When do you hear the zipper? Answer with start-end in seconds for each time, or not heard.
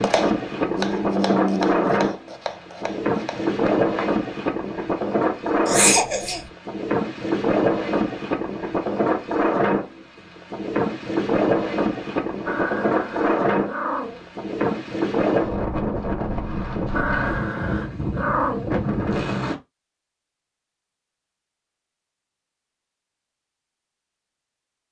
not heard.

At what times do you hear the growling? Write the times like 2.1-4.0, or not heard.
0.5-1.9, 12.4-14.2, 16.9-18.6.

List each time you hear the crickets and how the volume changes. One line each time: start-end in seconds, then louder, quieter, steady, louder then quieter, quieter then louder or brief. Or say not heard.
not heard.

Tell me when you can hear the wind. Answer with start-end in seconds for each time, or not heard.
0.0-19.6.